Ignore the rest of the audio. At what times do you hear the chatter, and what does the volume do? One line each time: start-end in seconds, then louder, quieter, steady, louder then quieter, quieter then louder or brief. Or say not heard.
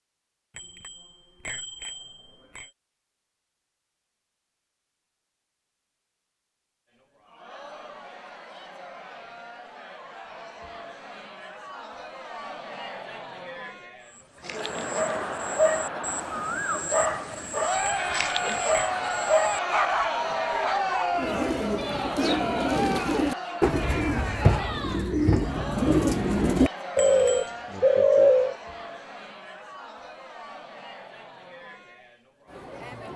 6.9-33.1 louder then quieter.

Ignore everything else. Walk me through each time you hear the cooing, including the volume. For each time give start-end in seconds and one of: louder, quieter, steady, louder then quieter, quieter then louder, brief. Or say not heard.
21.1-28.6 louder.